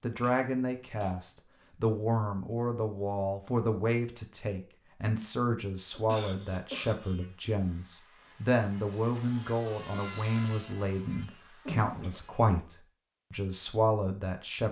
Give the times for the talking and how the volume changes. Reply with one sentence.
You can hear the talking from 0.0 to 14.6 s, at a steady volume.